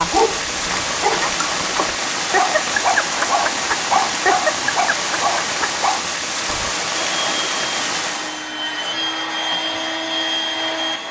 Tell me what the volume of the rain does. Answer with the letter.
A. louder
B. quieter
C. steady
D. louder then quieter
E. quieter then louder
C.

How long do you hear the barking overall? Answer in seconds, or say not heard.
7 s.